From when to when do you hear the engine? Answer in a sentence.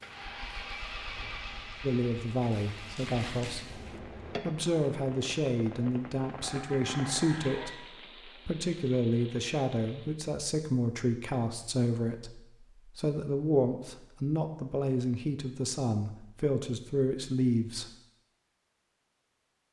You can hear the engine from 0.0 to 4.5 s.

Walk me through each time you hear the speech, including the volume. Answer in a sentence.
The speech can be heard from 1.8 to 17.9 s, at a steady volume.